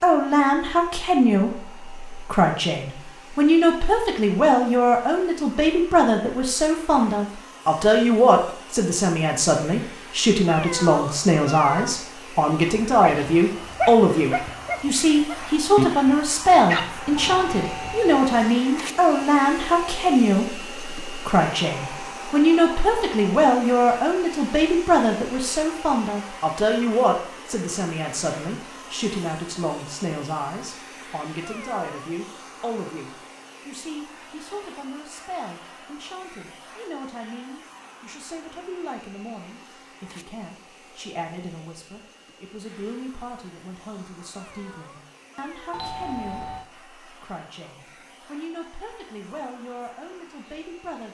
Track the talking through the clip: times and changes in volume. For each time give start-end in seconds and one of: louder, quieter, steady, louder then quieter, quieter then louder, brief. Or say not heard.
0.0-51.0 quieter.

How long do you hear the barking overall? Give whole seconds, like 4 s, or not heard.
5 s.